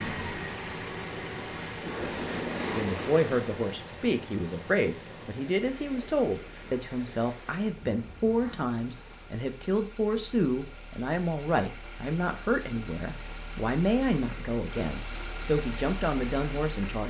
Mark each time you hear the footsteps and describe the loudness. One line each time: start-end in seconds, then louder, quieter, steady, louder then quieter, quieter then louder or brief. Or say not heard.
not heard.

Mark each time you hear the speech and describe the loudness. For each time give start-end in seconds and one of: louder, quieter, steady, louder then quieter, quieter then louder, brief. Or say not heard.
2.7-17.0 steady.